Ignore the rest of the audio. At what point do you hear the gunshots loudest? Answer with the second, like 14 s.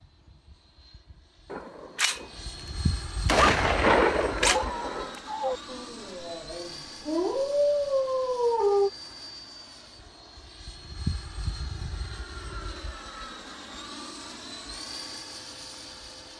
4 s.